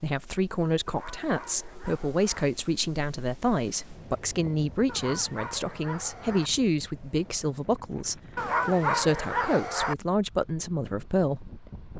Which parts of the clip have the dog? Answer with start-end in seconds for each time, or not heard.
0.8-2.5, 4.8-6.5, 8.3-9.9.